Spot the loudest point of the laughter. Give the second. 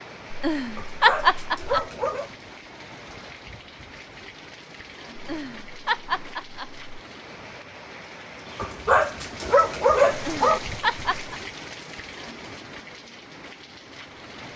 1 s.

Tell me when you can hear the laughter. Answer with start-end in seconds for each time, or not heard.
0.3-1.9, 5.2-6.8, 10.1-11.3.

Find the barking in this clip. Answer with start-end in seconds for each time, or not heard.
0.8-2.3, 8.6-10.6.